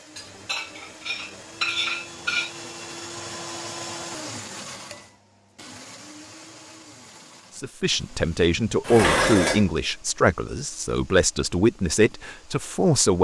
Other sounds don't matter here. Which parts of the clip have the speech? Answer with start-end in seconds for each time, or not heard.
7.5-13.1.